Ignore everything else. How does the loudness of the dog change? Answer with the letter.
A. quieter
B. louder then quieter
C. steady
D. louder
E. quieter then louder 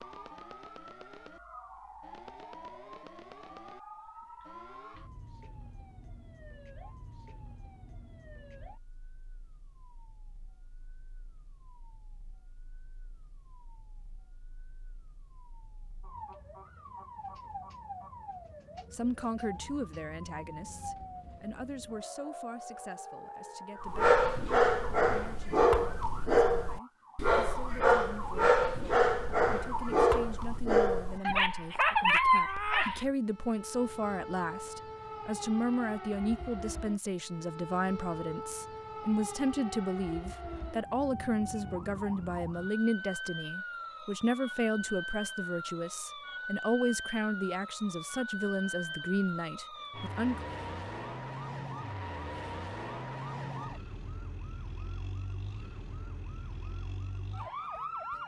C.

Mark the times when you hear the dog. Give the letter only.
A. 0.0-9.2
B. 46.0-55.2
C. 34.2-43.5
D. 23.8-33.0
D.